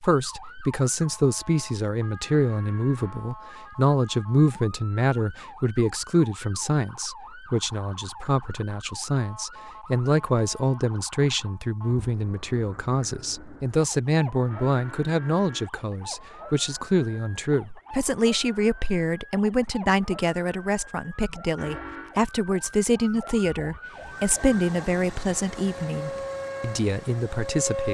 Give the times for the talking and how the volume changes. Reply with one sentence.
The talking can be heard from 0.0 to 27.9 s, at a steady volume.